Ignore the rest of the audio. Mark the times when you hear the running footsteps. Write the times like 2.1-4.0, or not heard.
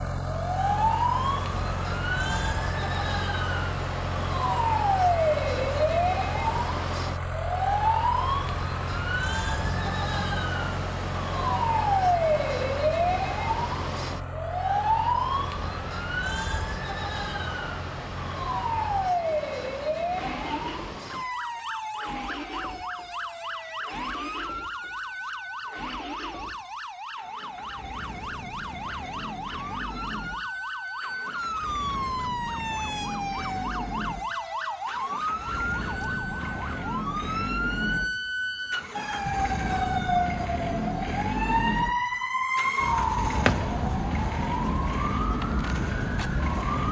not heard.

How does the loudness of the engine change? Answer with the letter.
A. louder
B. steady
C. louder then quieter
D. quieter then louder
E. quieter
D.